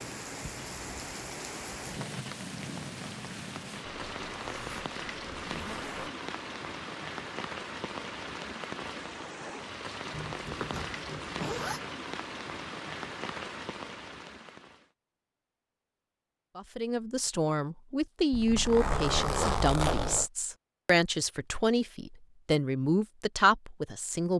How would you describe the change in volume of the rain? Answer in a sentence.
The volume of the rain stays about the same.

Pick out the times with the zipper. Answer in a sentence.
The zipper can be heard from 3.9 to 6.1 s, from 10.1 to 11.8 s and from 18.3 to 20.2 s.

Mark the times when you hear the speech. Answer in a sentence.
The speech can be heard from 16.6 to 24.3 s.